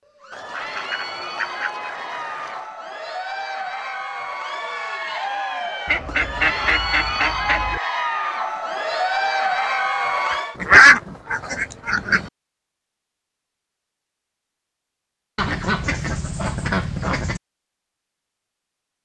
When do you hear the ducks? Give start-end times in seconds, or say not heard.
0.3-2.6, 5.8-7.8, 10.3-12.3, 15.3-17.4.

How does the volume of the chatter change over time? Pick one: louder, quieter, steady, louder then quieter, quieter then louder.
louder.